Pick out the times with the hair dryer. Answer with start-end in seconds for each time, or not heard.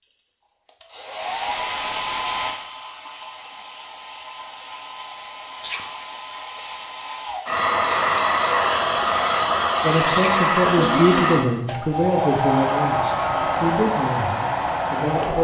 0.0-15.3.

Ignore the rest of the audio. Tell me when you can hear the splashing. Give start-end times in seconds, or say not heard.
not heard.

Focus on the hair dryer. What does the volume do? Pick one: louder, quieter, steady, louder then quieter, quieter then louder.
quieter then louder.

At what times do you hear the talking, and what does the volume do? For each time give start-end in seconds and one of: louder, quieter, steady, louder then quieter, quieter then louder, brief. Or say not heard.
9.8-15.3 quieter.